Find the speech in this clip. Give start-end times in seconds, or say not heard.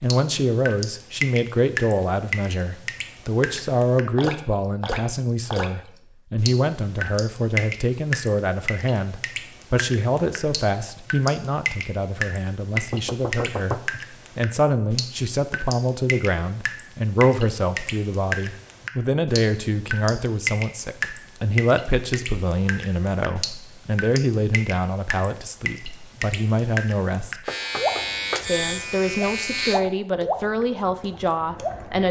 0.0-27.4, 28.4-32.0.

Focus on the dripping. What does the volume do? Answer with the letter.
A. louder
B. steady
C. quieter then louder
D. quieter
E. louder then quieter
B.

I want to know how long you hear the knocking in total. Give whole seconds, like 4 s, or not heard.
2 s.